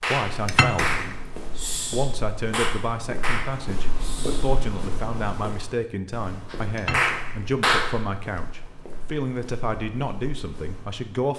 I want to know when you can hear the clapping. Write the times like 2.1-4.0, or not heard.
0.0-4.6, 6.5-8.0.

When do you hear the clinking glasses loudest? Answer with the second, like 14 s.
1 s.